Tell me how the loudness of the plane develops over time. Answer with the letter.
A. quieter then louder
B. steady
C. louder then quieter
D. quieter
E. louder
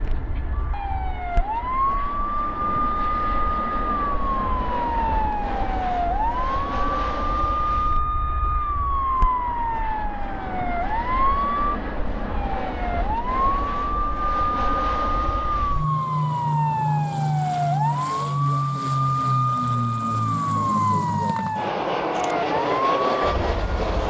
E.